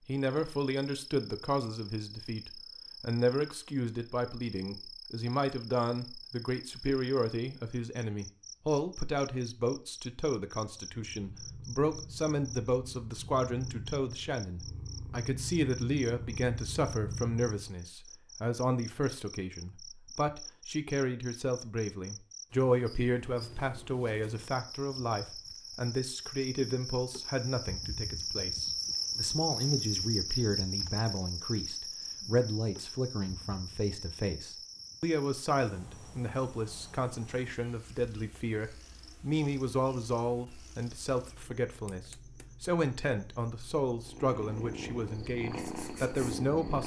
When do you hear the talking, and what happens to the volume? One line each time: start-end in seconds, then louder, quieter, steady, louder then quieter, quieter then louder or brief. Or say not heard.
0.1-46.8 steady.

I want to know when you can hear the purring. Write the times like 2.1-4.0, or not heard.
10.9-17.7, 44.0-46.8.